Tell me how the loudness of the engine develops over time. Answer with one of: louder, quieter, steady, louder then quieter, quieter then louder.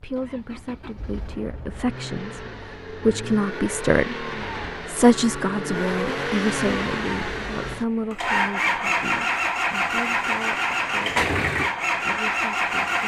louder.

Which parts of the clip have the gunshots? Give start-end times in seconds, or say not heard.
not heard.